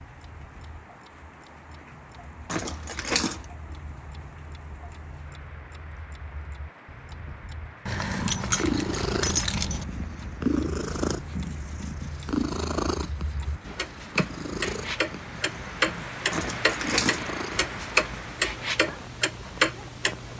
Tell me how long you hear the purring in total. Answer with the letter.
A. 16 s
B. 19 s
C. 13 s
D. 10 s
D.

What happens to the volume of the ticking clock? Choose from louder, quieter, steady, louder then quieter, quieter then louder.
louder.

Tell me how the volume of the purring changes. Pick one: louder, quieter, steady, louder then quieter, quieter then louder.
quieter.